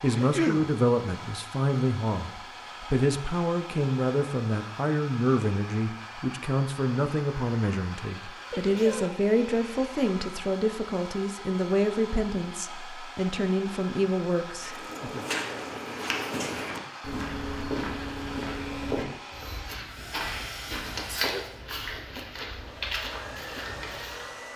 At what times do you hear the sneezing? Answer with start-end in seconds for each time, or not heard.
0.1-0.7, 8.5-9.2, 20.7-21.4.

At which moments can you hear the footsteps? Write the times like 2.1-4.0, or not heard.
14.6-24.4.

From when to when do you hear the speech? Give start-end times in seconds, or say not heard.
0.0-15.2.